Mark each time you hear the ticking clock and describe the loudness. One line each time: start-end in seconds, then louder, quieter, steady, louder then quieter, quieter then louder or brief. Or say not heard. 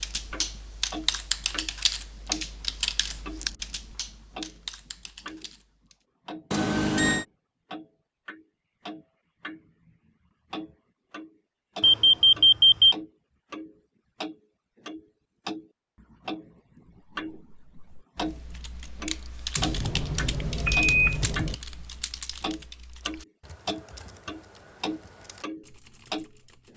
0.3-5.5 quieter then louder
6.2-26.7 louder.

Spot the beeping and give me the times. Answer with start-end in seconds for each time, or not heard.
6.5-7.2, 11.8-12.9, 19.6-21.6.